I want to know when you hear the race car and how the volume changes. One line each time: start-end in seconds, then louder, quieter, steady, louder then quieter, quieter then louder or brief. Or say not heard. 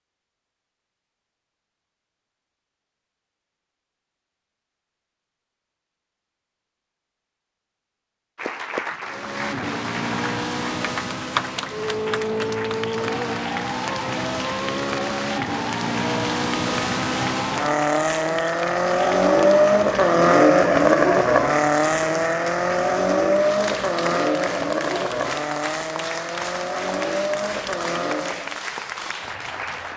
9.1-28.6 louder then quieter.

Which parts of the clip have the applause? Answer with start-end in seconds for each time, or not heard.
8.3-29.9.